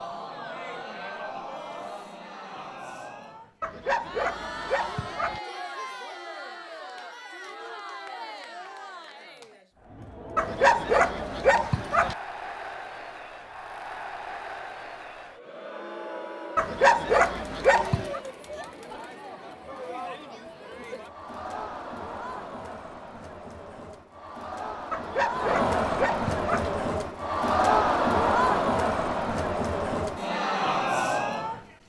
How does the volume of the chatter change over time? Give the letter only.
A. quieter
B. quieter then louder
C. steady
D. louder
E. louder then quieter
D.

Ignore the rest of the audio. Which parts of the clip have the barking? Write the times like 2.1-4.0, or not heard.
3.6-5.4, 10.3-12.2, 16.6-18.2, 24.9-26.7.